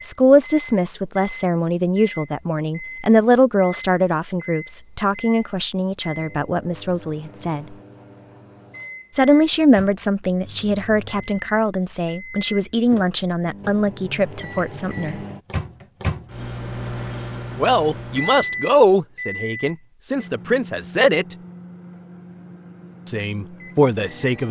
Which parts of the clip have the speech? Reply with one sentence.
You can hear the speech from 0.0 to 7.7 s, from 9.1 to 15.2 s, from 17.6 to 21.4 s and from 23.1 to 24.4 s.